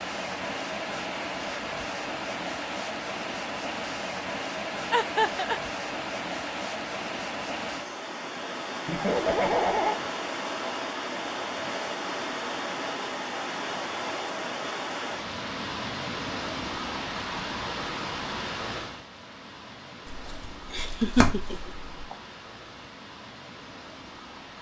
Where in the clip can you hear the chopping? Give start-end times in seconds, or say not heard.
20.1-22.1.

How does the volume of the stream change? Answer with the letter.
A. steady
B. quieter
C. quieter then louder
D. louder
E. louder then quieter
B.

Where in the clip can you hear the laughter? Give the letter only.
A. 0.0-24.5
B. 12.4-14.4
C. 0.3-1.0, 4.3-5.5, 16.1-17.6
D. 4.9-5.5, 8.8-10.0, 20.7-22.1
D.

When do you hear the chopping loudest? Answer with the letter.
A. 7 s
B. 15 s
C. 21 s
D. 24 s
C.